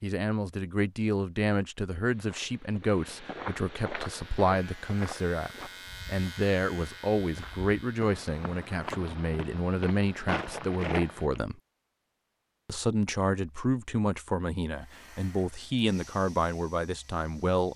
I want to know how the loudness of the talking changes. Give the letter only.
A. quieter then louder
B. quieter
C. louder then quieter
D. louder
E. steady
E.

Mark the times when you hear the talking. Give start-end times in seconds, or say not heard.
0.0-11.6, 12.7-17.7.